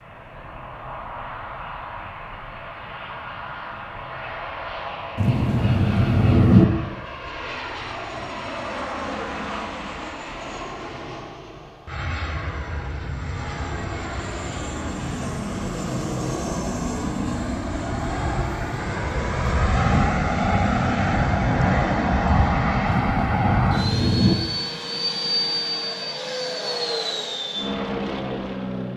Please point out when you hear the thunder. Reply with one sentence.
You can hear the thunder from 5.2 to 6.7 s and from 22.9 to 24.4 s.